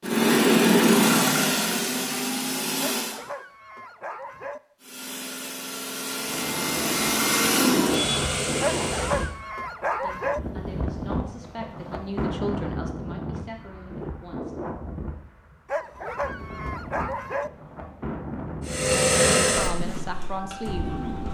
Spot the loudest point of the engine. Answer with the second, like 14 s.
1 s.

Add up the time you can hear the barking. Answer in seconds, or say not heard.
5 s.